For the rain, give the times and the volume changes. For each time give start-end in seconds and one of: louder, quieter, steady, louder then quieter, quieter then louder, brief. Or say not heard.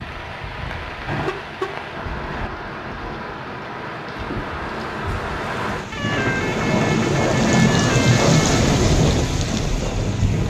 0.0-10.4 louder.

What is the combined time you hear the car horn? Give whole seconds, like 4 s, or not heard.
4 s.